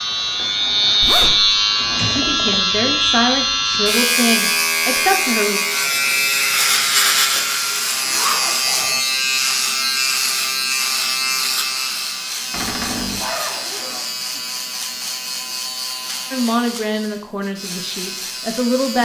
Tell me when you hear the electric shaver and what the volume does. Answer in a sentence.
The electric shaver can be heard from 0.0 to 19.0 s, getting quieter.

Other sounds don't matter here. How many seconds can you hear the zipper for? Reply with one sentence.
The zipper can be heard for 3 seconds in total.